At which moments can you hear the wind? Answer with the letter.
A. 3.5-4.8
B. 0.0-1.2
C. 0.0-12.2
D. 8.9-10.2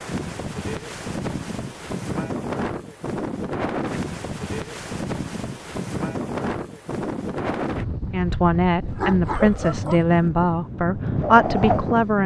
C.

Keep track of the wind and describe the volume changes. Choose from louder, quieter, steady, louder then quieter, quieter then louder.
steady.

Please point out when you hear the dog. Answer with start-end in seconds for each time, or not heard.
8.9-10.2.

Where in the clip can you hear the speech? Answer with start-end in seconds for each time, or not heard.
8.1-12.2.